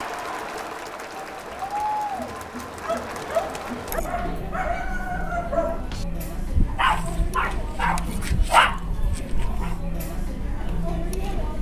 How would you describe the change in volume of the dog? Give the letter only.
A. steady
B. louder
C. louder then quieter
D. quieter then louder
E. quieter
B.